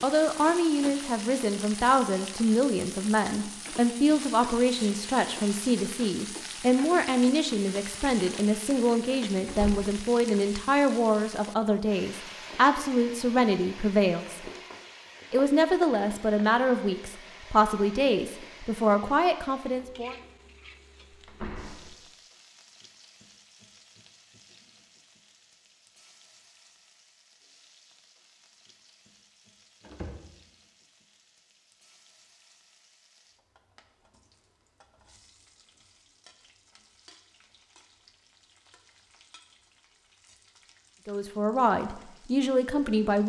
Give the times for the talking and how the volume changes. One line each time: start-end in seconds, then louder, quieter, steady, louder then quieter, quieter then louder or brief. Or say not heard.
0.0-14.4 steady
15.3-20.1 steady
41.0-43.2 brief.